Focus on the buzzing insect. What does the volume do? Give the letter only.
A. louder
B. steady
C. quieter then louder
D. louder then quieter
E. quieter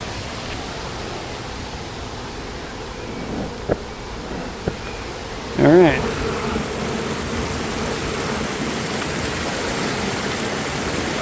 D.